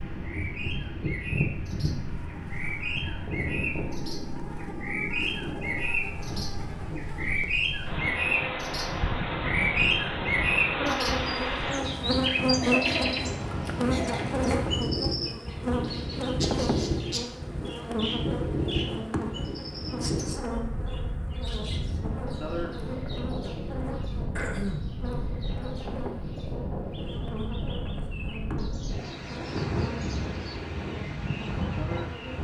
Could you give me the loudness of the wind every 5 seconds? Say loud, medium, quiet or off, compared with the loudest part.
loud, medium, loud, loud, loud, loud, loud.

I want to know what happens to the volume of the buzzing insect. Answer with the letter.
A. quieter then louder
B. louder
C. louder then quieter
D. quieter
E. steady
C.